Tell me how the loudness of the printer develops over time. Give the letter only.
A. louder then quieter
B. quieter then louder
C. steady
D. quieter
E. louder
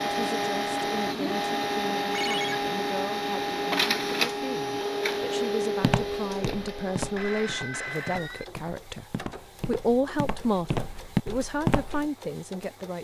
D.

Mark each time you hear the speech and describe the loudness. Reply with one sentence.
The speech can be heard from 0.0 to 12.9 s, getting louder.